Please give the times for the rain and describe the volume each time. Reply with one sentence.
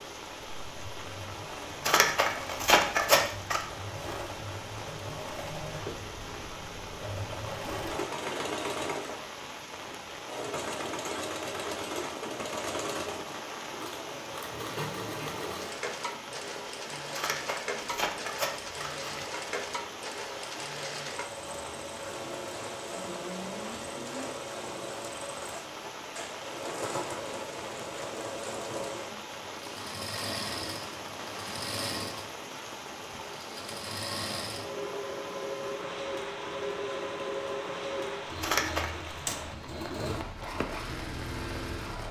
The rain can be heard from 0.0 to 42.0 s, at a steady volume.